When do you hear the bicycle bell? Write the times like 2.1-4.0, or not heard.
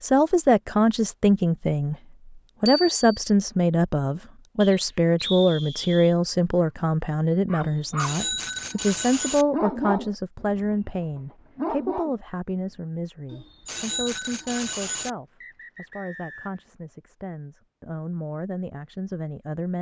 2.6-3.1, 7.6-9.4, 13.3-15.1.